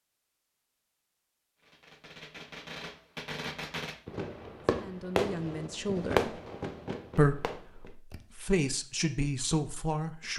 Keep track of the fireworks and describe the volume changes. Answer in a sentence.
The loudness of the fireworks goes up, then down.